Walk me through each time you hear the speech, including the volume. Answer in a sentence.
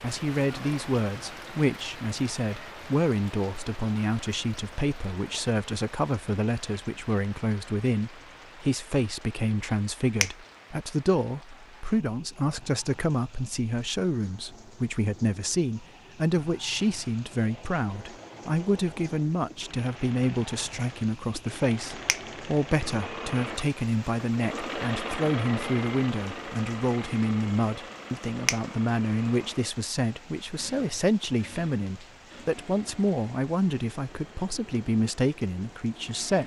The speech can be heard from 0.0 to 36.4 s, at a steady volume.